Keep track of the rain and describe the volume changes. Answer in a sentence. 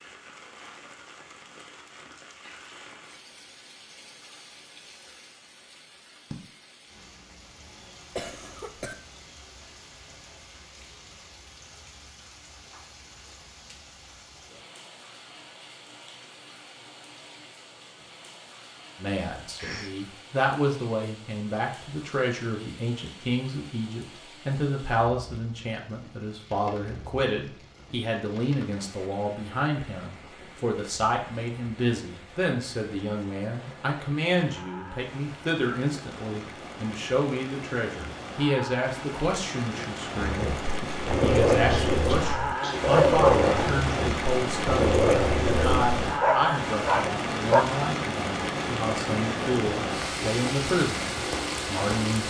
The loudness of the rain goes up.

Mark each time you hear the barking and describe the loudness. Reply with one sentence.
You can hear the barking from 40.1 to 47.6 s, at a steady volume.